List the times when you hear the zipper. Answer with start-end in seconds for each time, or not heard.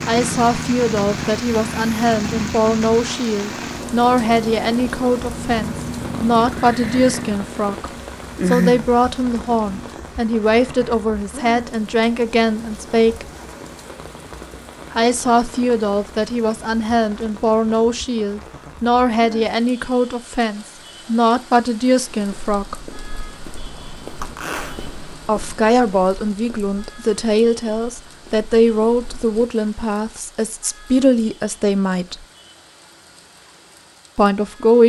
24.2-24.8.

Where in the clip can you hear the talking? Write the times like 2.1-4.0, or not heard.
0.1-7.8, 8.4-13.2, 14.9-22.8, 25.2-32.2, 34.1-34.8.